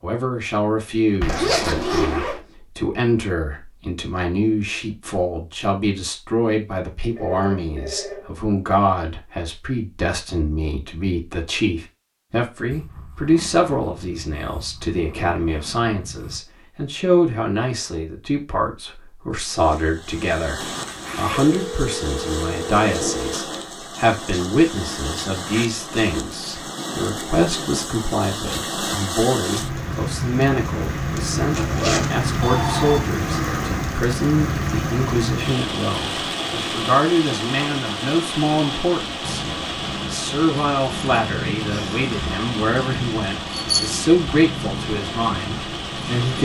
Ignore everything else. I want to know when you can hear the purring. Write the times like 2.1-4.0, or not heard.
12.7-16.4, 39.2-46.3.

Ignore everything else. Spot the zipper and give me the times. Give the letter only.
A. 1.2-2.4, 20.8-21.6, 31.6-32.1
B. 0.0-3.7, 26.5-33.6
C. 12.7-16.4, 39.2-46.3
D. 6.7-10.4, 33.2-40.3
A.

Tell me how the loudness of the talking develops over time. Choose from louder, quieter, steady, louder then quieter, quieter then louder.
steady.